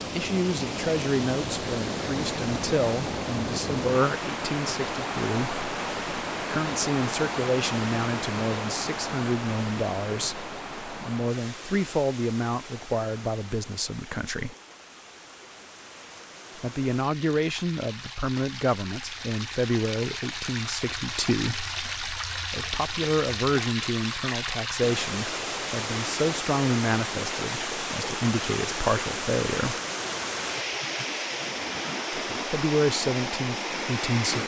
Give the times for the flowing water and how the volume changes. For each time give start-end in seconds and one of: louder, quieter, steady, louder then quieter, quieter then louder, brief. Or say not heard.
0.0-34.4 quieter then louder.